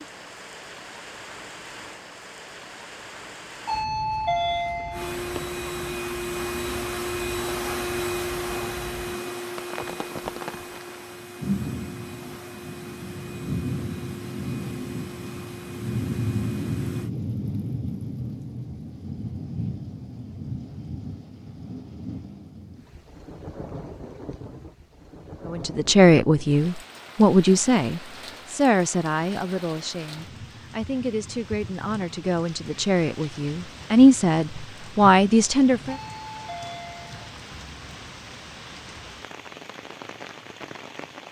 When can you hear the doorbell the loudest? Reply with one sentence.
The volume of the doorbell peaks at 4 seconds.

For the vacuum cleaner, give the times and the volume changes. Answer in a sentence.
The vacuum cleaner can be heard from 4.9 to 17.1 s, getting quieter.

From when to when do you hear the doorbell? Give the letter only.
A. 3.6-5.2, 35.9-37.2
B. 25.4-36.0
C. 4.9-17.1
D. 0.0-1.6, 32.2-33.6
A.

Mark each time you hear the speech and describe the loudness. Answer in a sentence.
You can hear the speech from 25.4 to 36.0 s, getting quieter then louder.